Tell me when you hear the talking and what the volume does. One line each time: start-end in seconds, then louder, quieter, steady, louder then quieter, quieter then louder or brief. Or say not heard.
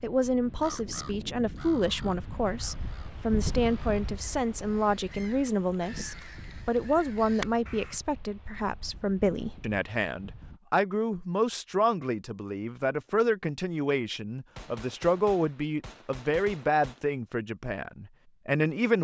0.0-18.9 steady.